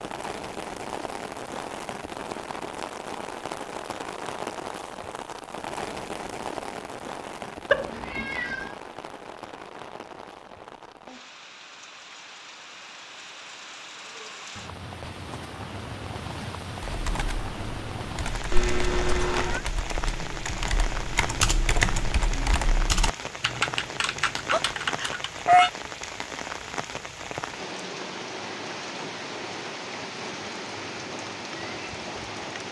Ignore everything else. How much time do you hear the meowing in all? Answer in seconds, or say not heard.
3 s.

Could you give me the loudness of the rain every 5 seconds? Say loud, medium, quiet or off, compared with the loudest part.
loud, loud, medium, loud, loud, loud, loud.